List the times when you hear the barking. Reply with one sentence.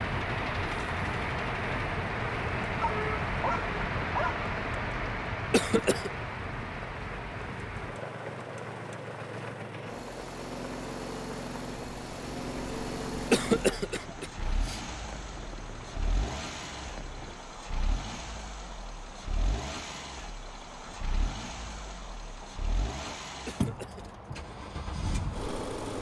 You can hear the barking from 2.8 to 4.5 s.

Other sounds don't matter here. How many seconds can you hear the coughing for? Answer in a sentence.
You can hear the coughing for 3 seconds altogether.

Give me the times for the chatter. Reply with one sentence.
The chatter can't be heard in this clip.